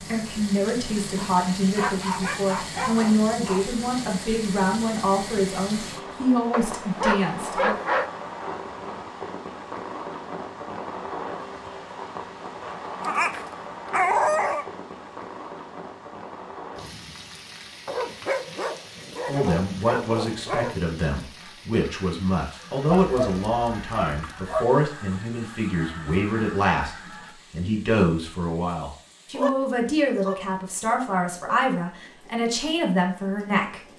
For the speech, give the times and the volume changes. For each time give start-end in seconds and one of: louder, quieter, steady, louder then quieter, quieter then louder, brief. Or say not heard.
0.0-7.8 steady
19.2-33.8 steady.